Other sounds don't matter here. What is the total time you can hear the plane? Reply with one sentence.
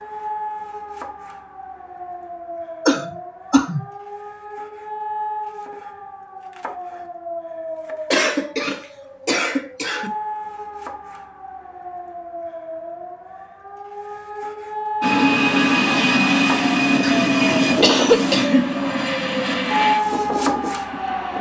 The plane can be heard for 6 seconds in total.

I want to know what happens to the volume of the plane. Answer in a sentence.
The loudness of the plane goes down.